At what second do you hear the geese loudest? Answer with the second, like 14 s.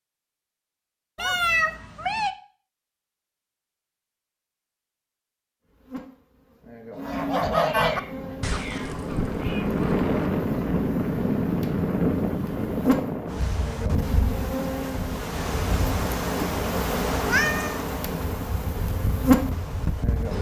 8 s.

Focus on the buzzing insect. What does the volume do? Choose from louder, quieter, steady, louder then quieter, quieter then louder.
louder.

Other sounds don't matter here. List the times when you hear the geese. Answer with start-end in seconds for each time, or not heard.
6.9-10.1.